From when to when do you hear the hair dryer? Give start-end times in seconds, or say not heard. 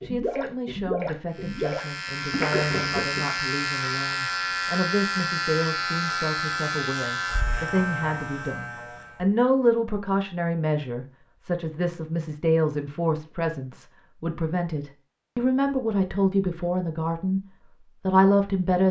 not heard.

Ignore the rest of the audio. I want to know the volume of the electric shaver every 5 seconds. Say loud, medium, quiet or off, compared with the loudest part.
loud, loud, off, off.